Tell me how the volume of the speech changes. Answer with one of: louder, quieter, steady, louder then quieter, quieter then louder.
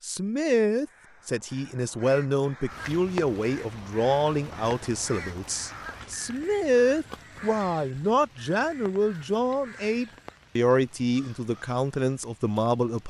steady.